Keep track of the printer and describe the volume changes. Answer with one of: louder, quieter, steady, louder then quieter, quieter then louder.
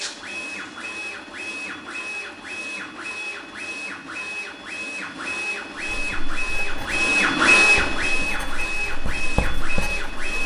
louder then quieter.